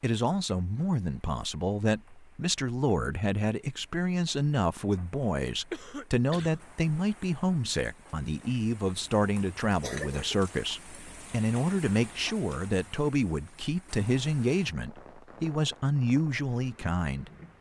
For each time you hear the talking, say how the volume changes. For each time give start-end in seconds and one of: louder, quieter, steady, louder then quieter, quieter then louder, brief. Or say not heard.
0.0-17.3 steady.